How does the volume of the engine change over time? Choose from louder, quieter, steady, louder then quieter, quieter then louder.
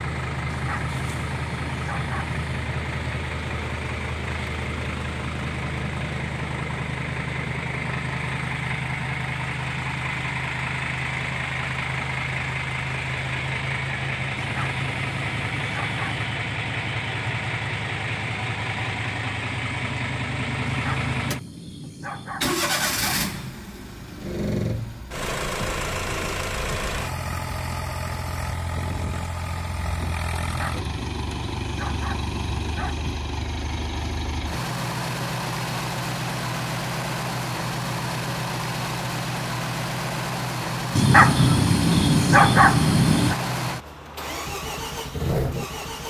steady.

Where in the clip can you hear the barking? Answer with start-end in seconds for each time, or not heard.
0.5-2.5, 14.3-16.2, 20.6-23.4, 30.4-33.1, 41.0-43.4.